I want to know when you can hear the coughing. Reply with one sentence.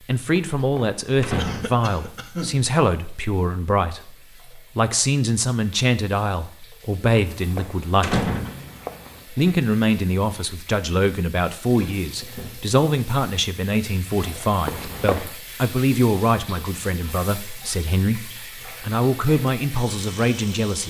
You can hear the coughing from 1.4 to 2.6 s.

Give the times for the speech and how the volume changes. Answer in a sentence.
The speech can be heard from 0.1 to 8.2 s, at a steady volume; and from 9.3 to 20.8 s, at a steady volume.